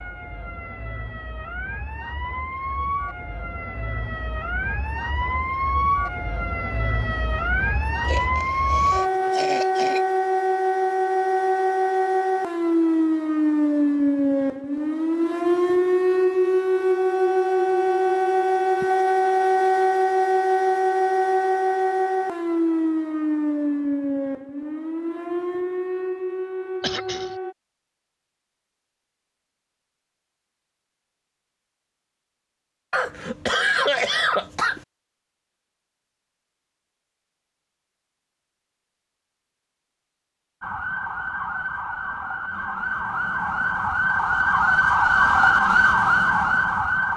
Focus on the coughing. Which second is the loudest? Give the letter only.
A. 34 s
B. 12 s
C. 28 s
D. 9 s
A.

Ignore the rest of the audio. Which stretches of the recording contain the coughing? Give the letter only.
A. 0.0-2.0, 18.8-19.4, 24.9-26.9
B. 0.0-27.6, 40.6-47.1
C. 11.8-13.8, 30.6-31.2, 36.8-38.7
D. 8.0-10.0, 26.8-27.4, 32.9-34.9
D.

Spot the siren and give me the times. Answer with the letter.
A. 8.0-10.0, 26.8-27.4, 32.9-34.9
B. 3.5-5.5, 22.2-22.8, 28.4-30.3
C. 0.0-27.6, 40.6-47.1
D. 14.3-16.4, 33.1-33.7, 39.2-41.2
C.